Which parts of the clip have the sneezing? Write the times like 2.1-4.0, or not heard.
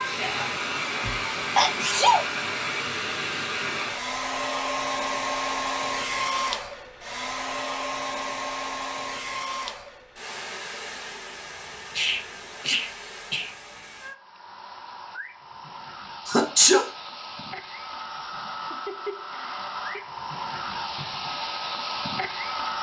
1.0-2.2, 11.9-13.5, 16.2-16.9.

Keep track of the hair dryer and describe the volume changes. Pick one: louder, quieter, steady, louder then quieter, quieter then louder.
quieter then louder.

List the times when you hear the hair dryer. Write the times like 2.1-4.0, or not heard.
0.0-22.7.